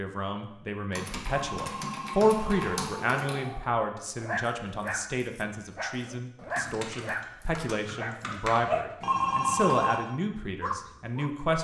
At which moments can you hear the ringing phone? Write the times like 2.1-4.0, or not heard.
1.5-2.8, 9.0-10.0.